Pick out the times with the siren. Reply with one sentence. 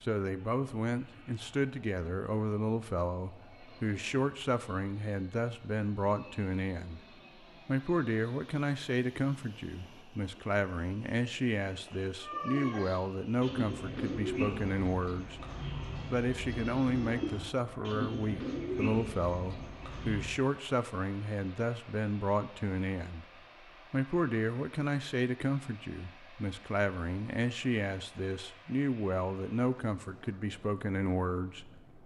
You can't hear the siren here.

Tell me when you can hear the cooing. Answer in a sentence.
You can hear the cooing from 12.2 to 20.4 s.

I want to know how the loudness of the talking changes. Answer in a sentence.
The loudness of the talking stays about the same.